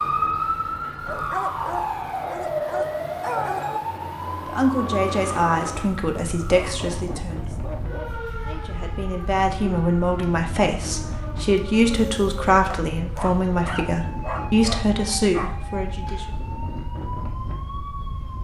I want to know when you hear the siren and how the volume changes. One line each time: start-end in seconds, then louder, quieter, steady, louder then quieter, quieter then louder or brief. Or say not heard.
0.0-18.3 quieter.